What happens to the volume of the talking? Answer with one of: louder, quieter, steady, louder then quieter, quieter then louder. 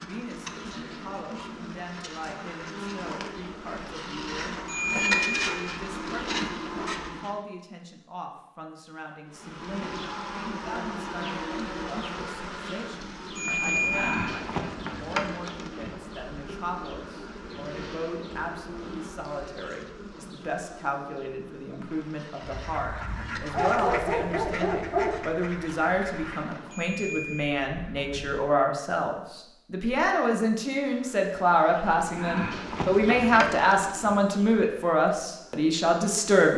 louder.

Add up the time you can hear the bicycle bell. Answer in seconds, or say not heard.
3 s.